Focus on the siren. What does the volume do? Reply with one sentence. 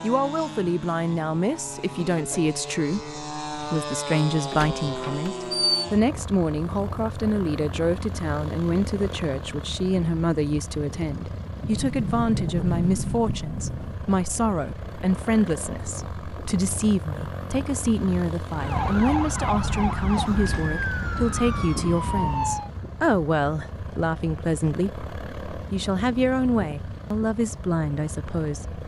The volume of the siren stays about the same.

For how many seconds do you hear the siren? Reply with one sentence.
The siren can be heard for 4 seconds in total.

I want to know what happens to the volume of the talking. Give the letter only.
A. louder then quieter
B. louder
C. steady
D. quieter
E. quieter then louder
C.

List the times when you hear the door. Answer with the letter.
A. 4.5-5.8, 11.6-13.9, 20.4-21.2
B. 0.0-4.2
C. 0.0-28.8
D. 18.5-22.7
A.